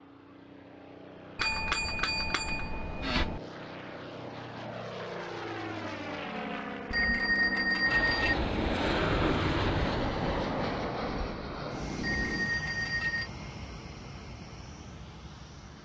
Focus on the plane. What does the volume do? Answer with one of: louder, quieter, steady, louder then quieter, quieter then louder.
louder then quieter.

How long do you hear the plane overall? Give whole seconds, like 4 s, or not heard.
16 s.